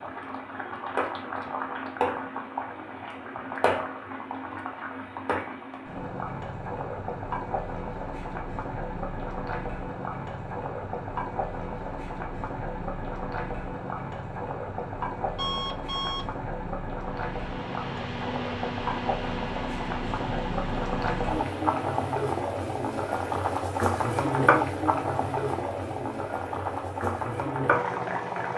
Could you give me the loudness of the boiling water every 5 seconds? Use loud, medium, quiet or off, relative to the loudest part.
medium, medium, medium, medium, loud, loud.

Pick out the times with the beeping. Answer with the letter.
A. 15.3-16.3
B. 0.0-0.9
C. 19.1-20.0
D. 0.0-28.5
A.